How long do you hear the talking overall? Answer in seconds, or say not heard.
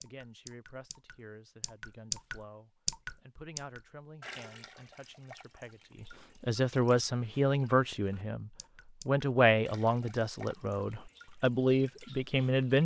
13 s.